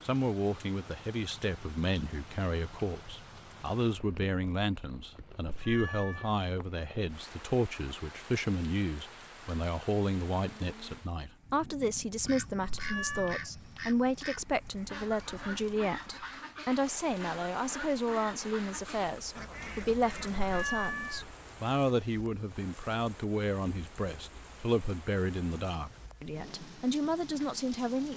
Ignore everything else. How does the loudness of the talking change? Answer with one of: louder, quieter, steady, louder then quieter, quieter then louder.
steady.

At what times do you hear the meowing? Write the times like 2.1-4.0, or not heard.
5.5-6.3, 12.7-13.5, 20.4-21.2.